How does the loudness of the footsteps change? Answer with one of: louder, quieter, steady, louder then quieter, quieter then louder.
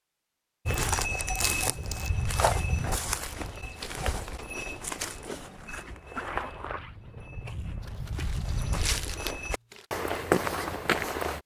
quieter then louder.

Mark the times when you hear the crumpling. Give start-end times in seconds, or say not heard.
0.7-2.1, 7.8-9.8.